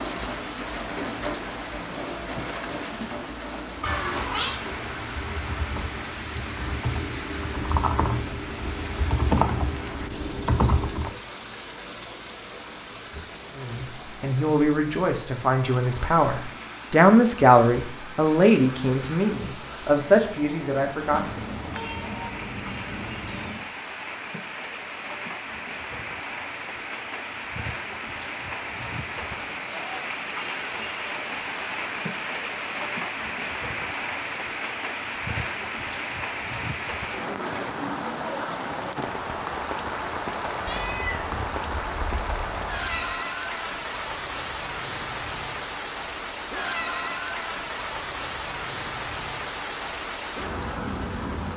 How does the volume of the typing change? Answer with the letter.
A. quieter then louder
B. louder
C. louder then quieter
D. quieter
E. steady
B.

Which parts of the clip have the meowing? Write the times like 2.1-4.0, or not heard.
3.8-4.6, 21.1-23.6, 40.6-43.2.